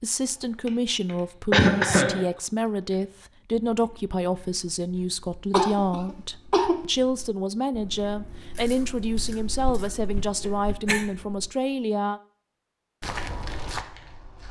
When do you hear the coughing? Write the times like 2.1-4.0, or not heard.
1.5-2.2, 5.5-6.8, 10.4-11.1.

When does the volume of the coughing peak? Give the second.
2 s.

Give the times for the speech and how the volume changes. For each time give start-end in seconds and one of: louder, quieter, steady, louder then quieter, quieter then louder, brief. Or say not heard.
0.0-12.2 steady.